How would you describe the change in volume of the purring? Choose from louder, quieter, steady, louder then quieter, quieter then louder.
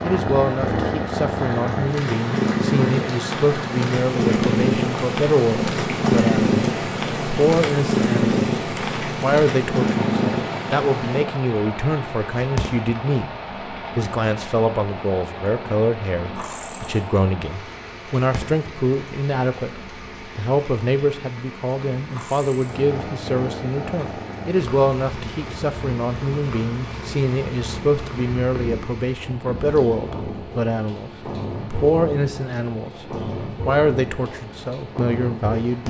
quieter then louder.